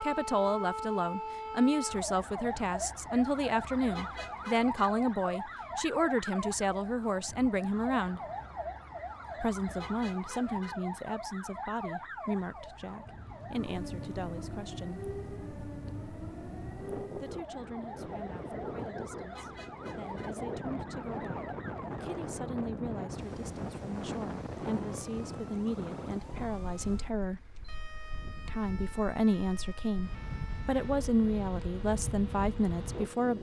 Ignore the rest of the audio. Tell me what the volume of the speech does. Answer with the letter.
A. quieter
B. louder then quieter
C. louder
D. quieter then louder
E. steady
D.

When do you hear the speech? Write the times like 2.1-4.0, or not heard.
0.0-8.2, 9.4-15.1, 17.2-27.4, 28.4-33.3.